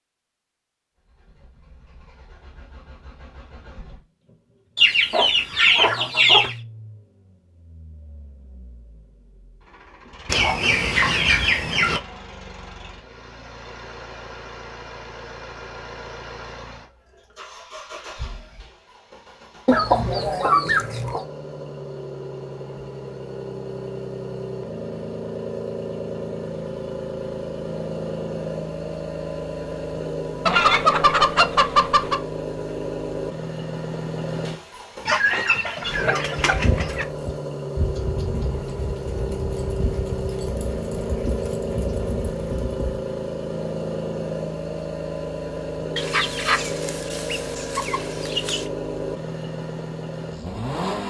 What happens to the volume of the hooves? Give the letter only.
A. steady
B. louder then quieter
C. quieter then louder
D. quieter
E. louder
A.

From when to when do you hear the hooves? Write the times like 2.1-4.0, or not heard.
36.5-43.0.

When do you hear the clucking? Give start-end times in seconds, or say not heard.
4.8-6.5, 10.2-12.0, 19.6-21.2, 30.4-32.2, 35.0-37.0, 46.0-48.6.